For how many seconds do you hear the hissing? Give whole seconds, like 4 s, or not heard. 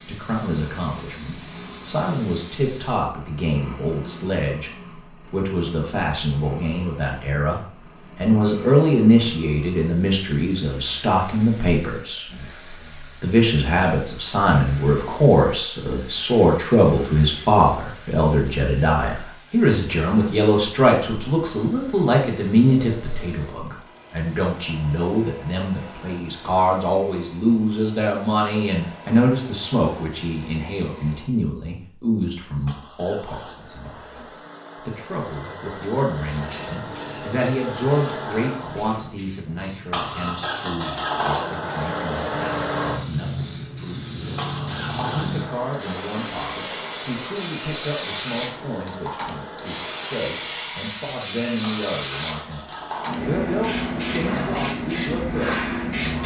23 s.